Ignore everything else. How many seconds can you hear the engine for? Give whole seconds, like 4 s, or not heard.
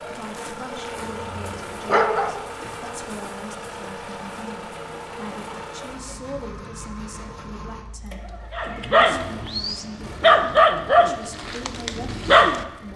13 s.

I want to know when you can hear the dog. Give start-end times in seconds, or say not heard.
0.0-2.4, 8.5-12.9.